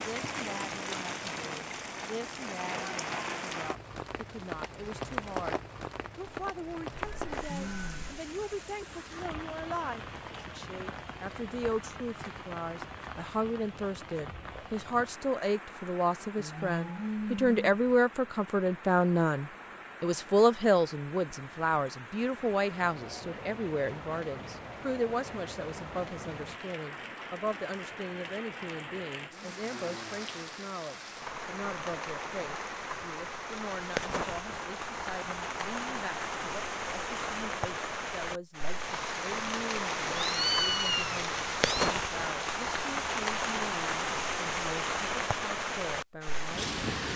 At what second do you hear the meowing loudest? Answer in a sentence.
The volume of the meowing peaks at 41 seconds.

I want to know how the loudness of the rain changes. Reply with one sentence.
The loudness of the rain goes down, then up.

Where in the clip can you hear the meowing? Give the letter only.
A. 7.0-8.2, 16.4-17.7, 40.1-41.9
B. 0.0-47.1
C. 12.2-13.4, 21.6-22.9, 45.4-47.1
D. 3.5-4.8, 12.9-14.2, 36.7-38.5
A.